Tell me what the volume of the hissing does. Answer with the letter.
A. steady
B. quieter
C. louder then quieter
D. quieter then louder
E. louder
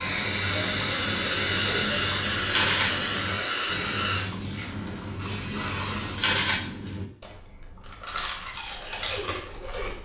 B.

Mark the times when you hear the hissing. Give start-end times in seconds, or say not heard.
0.0-6.4.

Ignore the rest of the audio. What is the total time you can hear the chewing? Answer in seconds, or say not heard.
10 s.